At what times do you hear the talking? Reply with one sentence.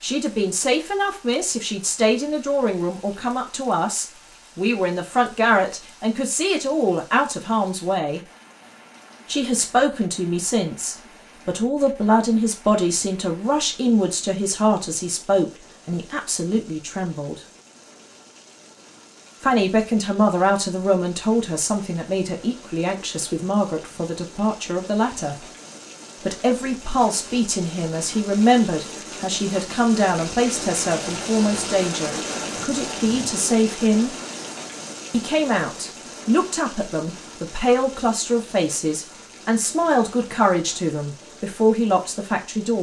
You can hear the talking from 0.0 to 8.2 s, from 9.2 to 17.4 s, from 19.4 to 25.4 s, from 26.2 to 34.1 s and from 35.1 to 42.7 s.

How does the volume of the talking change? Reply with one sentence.
The loudness of the talking stays about the same.